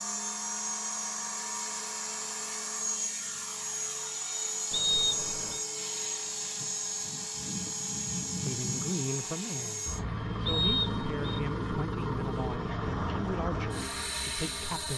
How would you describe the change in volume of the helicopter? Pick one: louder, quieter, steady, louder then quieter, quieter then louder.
steady.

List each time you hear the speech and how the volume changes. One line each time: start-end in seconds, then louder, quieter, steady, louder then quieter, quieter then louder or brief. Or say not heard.
8.4-14.9 steady.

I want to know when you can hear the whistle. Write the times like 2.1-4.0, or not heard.
4.7-5.7, 10.4-11.4.